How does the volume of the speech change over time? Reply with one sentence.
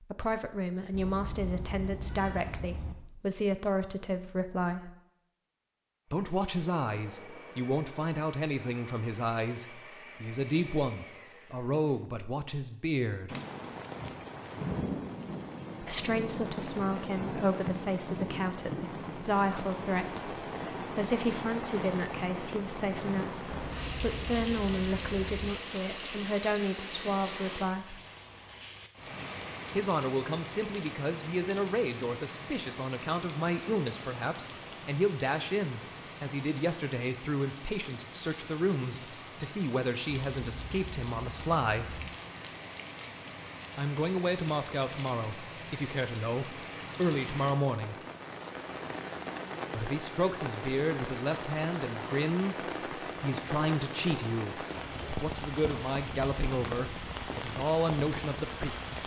The loudness of the speech stays about the same.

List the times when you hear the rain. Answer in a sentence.
You can hear the rain from 13.2 to 59.0 s.